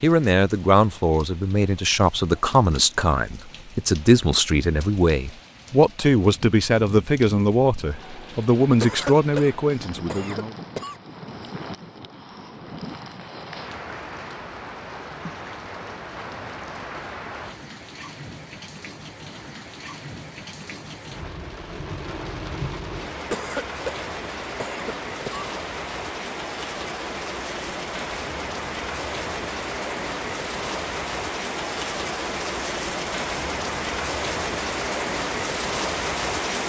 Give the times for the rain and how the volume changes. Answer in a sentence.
You can hear the rain from 0.0 to 36.6 s, getting louder.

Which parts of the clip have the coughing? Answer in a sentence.
The coughing can be heard from 8.8 to 10.9 s and from 23.3 to 25.5 s.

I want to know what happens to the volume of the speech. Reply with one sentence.
The loudness of the speech stays about the same.